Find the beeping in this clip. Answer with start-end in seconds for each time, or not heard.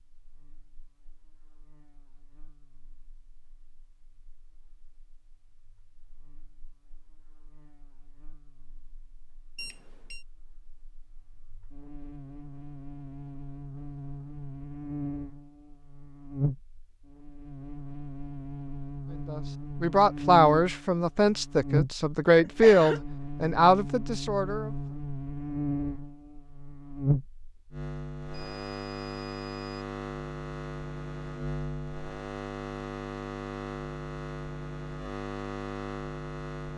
9.6-10.2, 28.3-29.9.